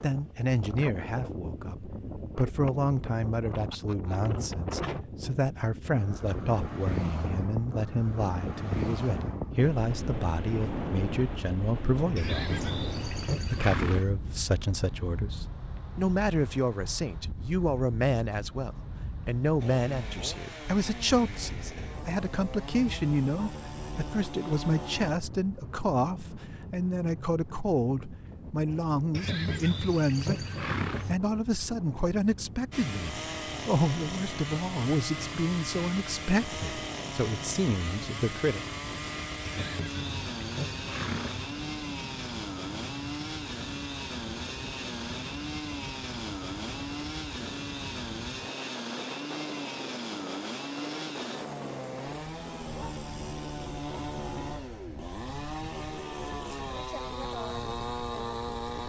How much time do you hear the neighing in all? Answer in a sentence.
The neighing can be heard for 6 seconds in total.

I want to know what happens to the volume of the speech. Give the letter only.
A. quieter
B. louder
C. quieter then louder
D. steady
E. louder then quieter
D.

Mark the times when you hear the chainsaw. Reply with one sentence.
The chainsaw can be heard from 19.6 to 25.1 s and from 32.7 to 58.8 s.